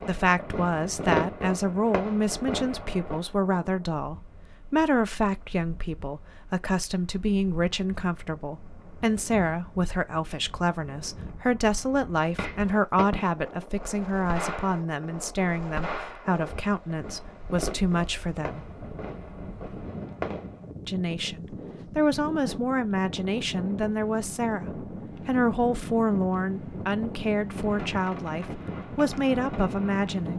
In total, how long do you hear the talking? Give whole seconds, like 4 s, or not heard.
28 s.